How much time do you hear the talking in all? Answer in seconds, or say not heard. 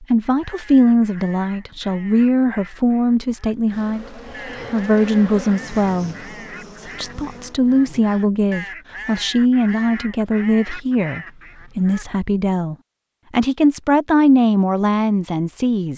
15 s.